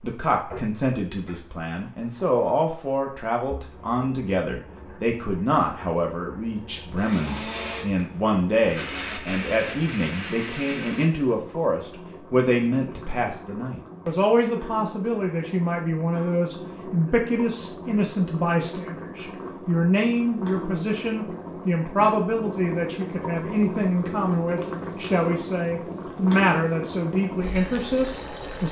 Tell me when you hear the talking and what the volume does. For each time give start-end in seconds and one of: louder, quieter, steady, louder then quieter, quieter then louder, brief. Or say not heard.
0.0-28.6 steady.